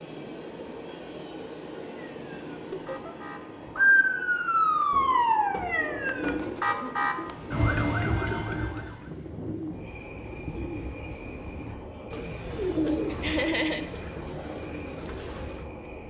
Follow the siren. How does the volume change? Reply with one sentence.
The volume of the siren goes up, then down.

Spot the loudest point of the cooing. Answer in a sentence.
The volume of the cooing peaks at 13 seconds.